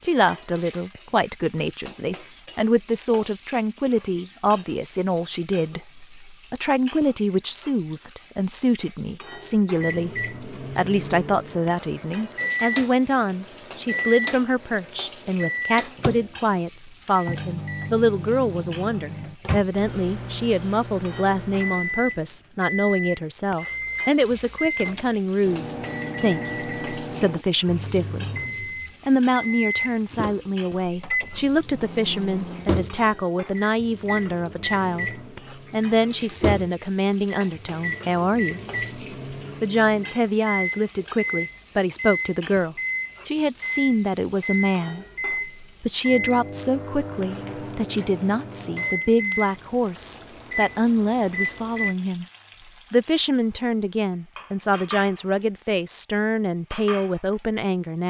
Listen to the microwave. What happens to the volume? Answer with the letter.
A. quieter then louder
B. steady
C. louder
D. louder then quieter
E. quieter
B.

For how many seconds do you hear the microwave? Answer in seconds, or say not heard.
42 s.